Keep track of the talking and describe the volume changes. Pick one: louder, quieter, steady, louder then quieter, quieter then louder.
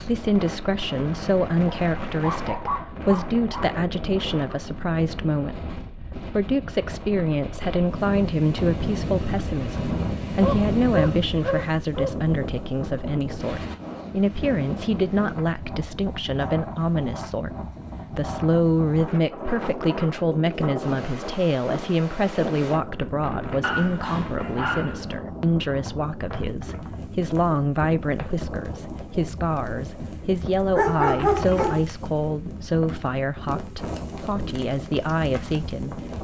steady.